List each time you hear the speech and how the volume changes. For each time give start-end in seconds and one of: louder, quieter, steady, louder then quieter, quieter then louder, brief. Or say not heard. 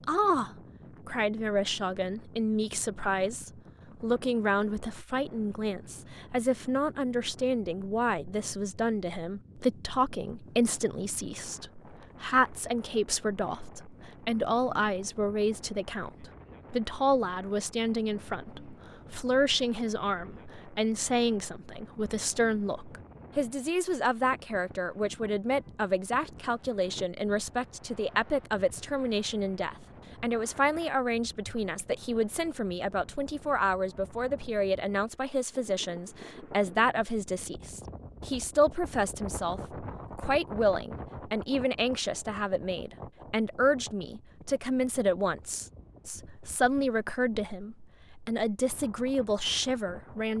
0.1-50.3 steady.